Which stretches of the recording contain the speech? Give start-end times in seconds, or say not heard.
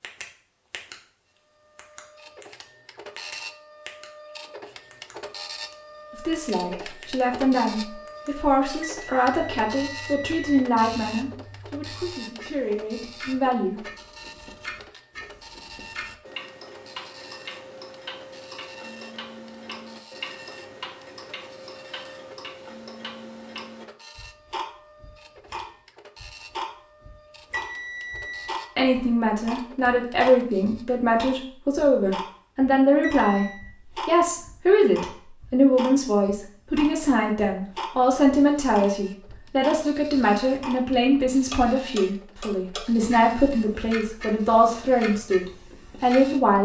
6.1-13.8, 28.8-46.5.